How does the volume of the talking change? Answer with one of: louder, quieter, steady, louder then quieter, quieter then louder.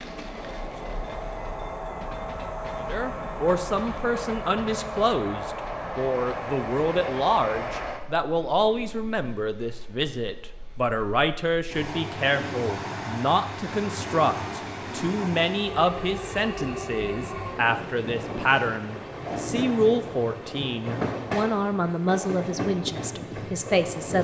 steady.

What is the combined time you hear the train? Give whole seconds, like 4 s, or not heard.
24 s.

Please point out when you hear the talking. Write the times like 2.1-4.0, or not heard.
2.9-24.2.